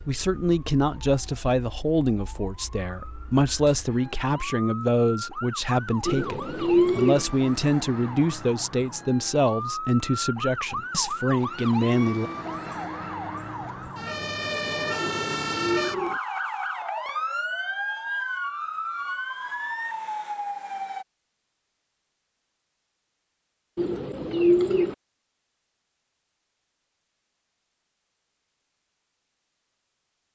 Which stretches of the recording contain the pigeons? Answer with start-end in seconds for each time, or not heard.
6.0-7.2, 15.0-16.2, 23.8-24.9.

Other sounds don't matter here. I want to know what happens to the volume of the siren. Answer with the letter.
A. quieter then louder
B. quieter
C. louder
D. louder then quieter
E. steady
C.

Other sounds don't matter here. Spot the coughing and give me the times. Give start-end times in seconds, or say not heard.
not heard.